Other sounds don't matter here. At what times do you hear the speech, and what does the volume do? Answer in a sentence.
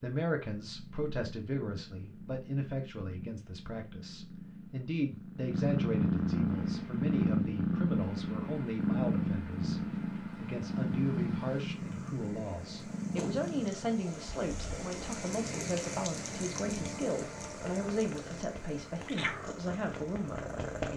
You can hear the speech from 0.0 to 20.9 s, at a steady volume.